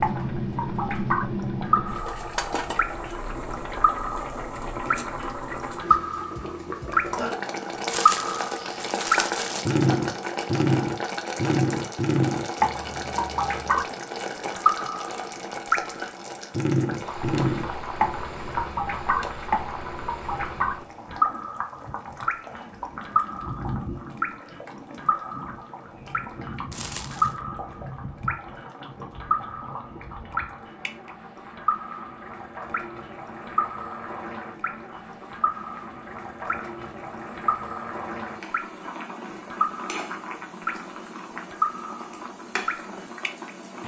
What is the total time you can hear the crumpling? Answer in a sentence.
The crumpling can be heard for 3 seconds in total.